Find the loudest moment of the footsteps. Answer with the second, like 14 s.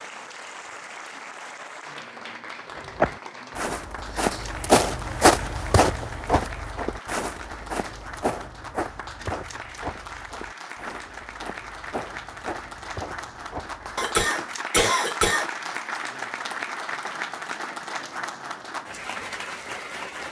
5 s.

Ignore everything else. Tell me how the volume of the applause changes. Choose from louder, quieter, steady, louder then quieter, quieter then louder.
louder.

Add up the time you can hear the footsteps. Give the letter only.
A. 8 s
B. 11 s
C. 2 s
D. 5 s
B.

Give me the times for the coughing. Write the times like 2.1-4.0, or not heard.
13.9-15.5.